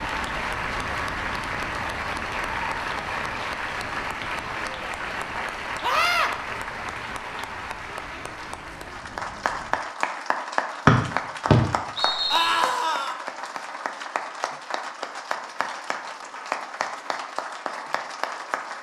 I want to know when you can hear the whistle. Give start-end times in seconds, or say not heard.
10.8-12.7.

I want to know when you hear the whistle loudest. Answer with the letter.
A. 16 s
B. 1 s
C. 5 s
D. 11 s
D.